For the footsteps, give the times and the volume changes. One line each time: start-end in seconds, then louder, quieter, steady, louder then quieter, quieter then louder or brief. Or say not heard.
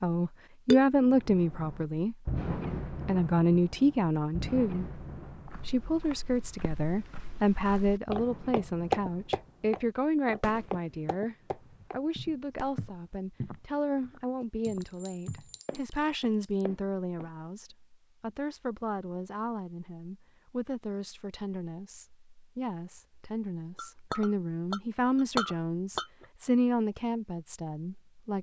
5.5-17.3 louder then quieter.